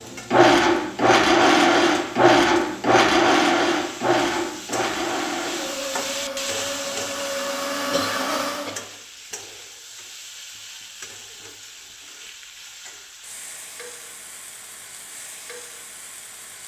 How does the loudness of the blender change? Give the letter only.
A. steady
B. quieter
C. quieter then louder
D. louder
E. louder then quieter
B.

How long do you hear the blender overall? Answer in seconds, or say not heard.
9 s.